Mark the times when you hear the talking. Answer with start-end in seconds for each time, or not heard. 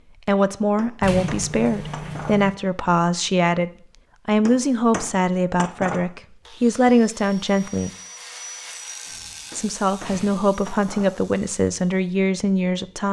0.2-7.9, 9.5-13.0.